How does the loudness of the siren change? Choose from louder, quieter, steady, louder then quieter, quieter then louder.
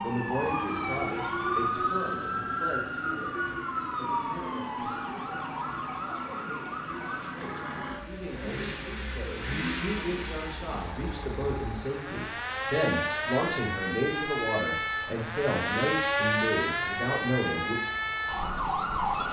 quieter then louder.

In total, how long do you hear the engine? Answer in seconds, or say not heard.
19 s.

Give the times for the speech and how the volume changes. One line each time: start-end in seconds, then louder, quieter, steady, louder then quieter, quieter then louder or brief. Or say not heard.
0.0-17.8 quieter then louder.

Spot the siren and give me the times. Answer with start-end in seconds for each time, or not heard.
0.0-19.2.